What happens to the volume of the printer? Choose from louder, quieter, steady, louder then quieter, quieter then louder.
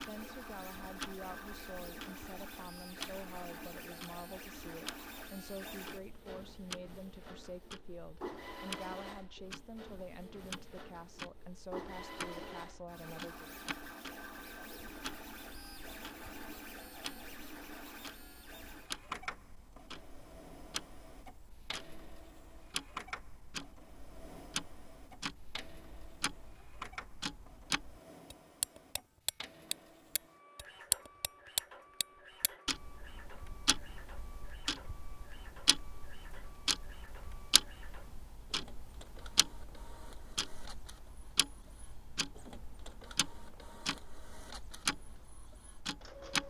quieter.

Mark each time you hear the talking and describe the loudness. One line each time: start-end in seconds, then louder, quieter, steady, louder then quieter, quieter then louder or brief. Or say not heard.
0.0-13.6 steady.